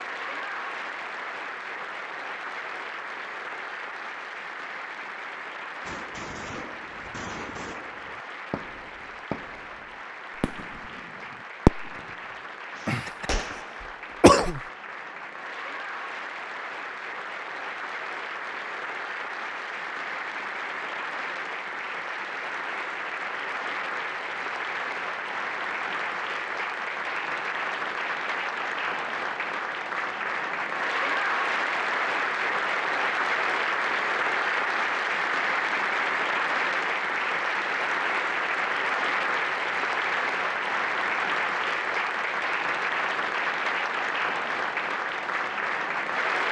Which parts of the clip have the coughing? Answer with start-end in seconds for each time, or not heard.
12.8-13.4, 14.2-14.6.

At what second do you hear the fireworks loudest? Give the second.
12 s.